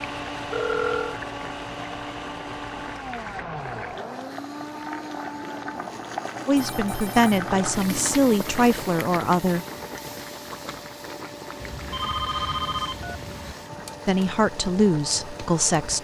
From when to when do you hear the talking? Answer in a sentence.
The talking can be heard from 6.5 to 9.7 s and from 14.1 to 16.0 s.